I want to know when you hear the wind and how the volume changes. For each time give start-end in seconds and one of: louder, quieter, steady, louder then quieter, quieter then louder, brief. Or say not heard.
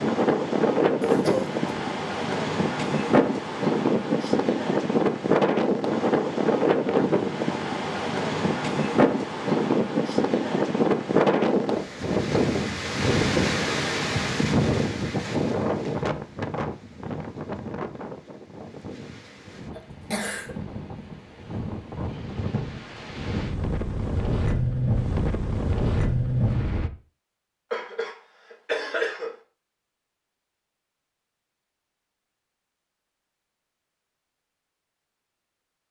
0.0-26.9 quieter then louder.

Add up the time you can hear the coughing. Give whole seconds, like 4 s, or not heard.
3 s.